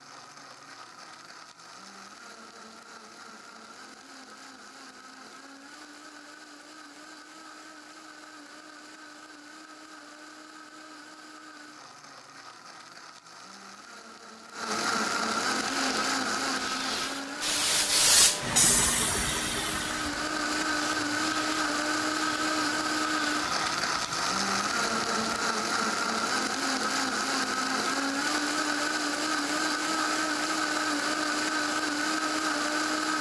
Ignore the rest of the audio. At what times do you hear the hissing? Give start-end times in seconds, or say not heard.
15.6-25.3.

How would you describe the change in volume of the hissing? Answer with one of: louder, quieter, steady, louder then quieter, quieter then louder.
louder then quieter.